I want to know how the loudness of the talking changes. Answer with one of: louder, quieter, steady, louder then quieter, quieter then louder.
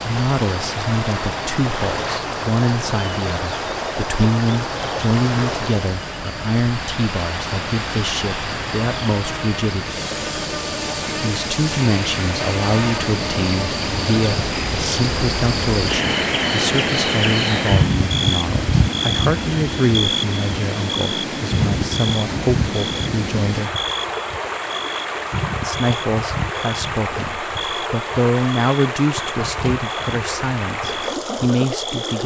steady.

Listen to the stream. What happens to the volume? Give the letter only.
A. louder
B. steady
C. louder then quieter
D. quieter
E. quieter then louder
B.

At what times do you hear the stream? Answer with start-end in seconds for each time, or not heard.
0.0-32.2.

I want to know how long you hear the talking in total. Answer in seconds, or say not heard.
29 s.